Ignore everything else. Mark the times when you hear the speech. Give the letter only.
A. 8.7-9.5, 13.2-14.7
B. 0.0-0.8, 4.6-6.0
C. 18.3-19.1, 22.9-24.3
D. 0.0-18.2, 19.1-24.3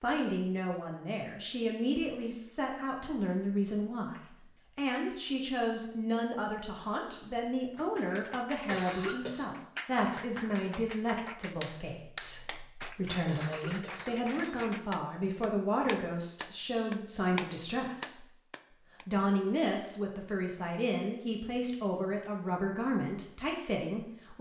D.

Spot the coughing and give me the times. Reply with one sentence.
The coughing can be heard from 8.7 to 9.5 s and from 13.2 to 14.7 s.